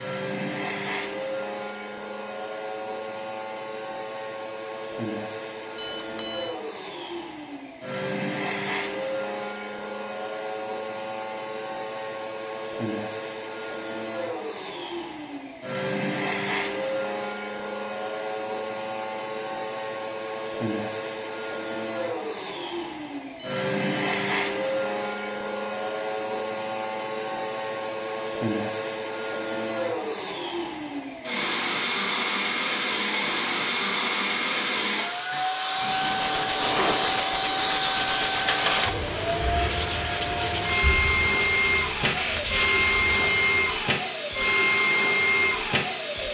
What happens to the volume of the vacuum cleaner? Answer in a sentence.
The volume of the vacuum cleaner goes up.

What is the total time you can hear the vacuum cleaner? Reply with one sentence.
The vacuum cleaner can be heard for 46 seconds in total.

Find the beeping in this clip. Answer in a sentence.
The beeping can be heard from 5.8 to 6.6 s, from 23.4 to 24.2 s and from 43.2 to 44.0 s.